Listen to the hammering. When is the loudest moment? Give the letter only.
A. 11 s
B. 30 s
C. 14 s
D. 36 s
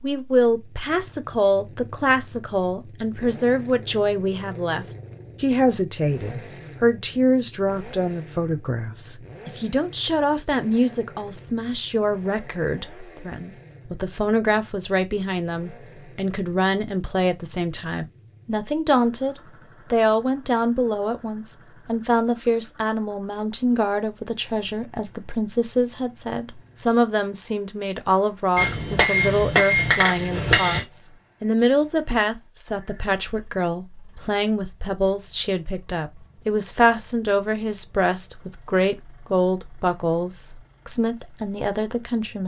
B.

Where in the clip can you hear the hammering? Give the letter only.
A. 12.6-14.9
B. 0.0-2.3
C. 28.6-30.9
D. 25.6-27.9
C.